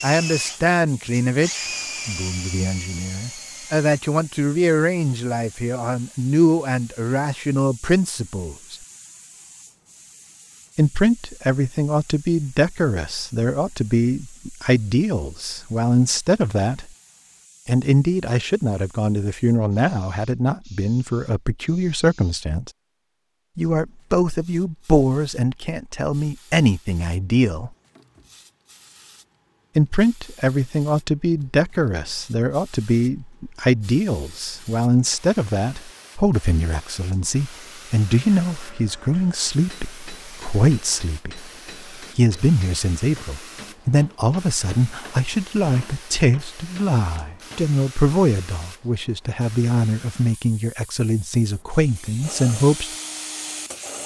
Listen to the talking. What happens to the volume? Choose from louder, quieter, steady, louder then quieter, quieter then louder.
steady.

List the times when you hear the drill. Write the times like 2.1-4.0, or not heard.
0.0-4.0, 51.7-54.0.